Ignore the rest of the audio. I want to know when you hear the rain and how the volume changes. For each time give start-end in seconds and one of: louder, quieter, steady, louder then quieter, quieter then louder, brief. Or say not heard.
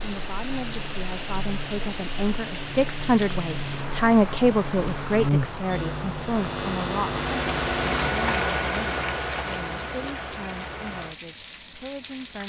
0.0-12.4 louder then quieter.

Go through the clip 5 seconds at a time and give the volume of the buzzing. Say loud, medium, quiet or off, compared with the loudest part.
medium, loud, off.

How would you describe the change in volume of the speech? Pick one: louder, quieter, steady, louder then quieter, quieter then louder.
louder then quieter.